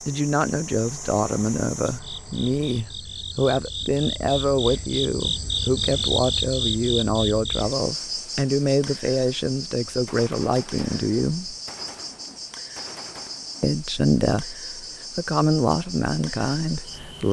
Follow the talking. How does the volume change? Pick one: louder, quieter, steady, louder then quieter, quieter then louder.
steady.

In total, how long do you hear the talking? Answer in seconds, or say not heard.
15 s.